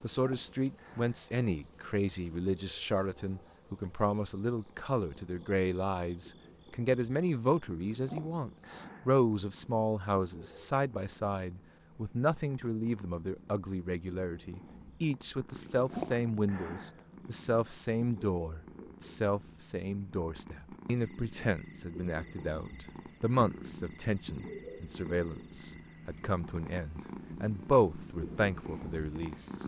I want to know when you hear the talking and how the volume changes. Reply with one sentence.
The talking can be heard from 0.0 to 29.6 s, at a steady volume.